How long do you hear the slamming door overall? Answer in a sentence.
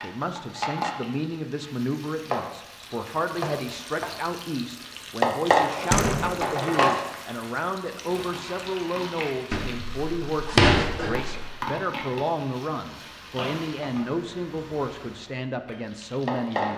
You can hear the slamming door for 2 seconds altogether.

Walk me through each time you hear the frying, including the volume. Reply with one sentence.
The frying can be heard from 0.0 to 16.7 s, getting louder then quieter.